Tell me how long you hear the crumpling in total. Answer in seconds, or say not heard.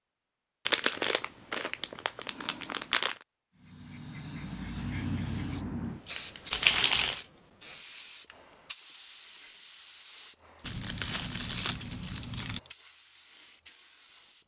5 s.